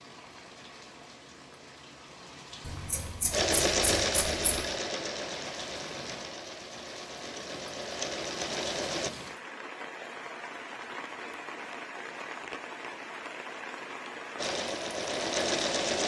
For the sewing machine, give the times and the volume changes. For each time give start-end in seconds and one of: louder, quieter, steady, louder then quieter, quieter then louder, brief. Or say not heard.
3.3-9.1 quieter then louder
14.3-16.0 brief.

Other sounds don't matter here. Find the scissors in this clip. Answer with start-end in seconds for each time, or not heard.
2.6-4.6.